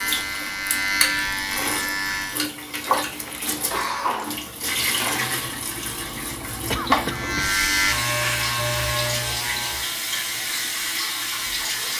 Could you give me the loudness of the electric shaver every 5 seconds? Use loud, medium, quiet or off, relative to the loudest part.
loud, loud, medium.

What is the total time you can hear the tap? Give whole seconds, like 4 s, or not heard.
12 s.